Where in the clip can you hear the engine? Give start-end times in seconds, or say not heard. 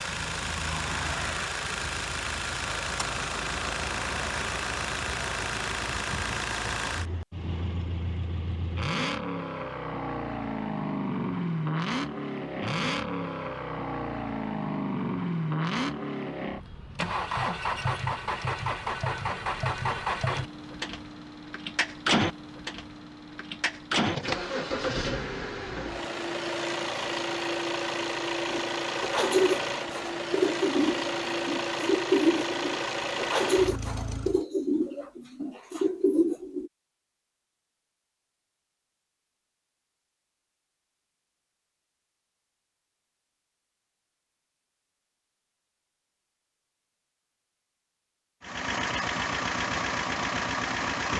0.0-34.4, 48.4-51.1.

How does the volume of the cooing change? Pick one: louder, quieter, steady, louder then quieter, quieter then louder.
steady.